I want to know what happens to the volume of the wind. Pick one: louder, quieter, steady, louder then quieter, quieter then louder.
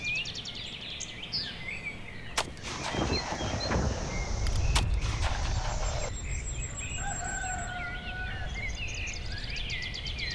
quieter.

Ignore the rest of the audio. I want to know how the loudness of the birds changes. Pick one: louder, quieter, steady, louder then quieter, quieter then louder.
quieter then louder.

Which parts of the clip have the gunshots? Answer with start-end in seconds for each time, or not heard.
2.4-6.1.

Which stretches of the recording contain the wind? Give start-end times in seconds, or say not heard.
2.3-10.3.